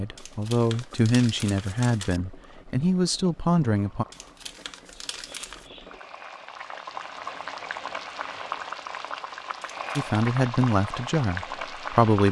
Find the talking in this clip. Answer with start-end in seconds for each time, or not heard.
0.0-4.0, 9.9-12.2.